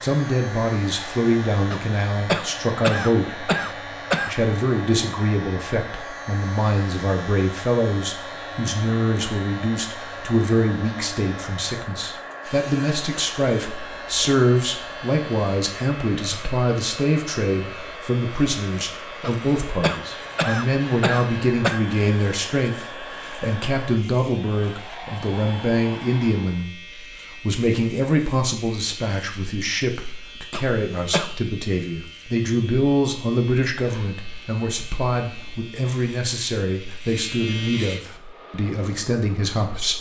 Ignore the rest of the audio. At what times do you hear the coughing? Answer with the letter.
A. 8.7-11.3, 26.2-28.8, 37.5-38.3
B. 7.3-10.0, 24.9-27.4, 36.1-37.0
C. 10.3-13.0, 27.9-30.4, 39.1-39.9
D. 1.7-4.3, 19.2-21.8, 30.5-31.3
D.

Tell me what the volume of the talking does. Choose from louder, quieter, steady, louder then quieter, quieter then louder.
steady.